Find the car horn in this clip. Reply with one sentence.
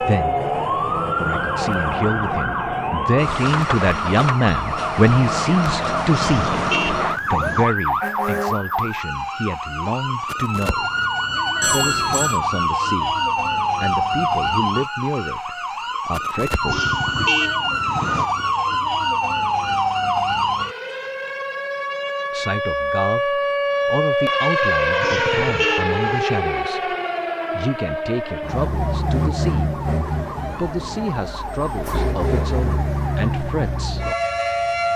You can hear the car horn from 6.1 to 7.7 s, from 16.6 to 18.3 s and from 25.0 to 26.2 s.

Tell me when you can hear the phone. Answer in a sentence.
You can hear the phone from 11.6 to 12.4 s.